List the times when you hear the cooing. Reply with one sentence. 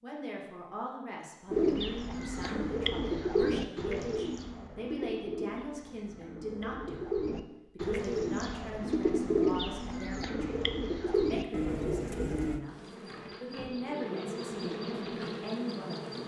The cooing can be heard from 1.5 to 12.6 s.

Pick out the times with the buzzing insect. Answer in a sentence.
The buzzing insect can be heard from 12.7 to 16.2 s.